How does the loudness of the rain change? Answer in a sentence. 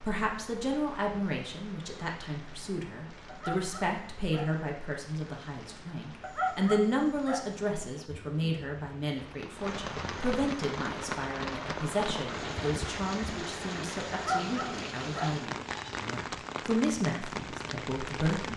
The loudness of the rain goes up.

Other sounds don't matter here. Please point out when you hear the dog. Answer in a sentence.
You can hear the dog from 3.2 to 4.5 s, from 6.2 to 7.5 s and from 14.1 to 15.4 s.